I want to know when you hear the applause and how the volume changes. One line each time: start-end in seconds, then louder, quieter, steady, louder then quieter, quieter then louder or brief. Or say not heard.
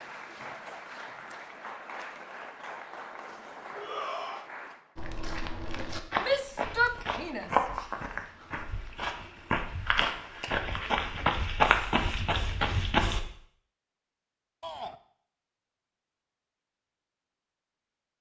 0.0-5.0 steady.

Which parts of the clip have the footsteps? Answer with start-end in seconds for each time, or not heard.
5.0-13.2.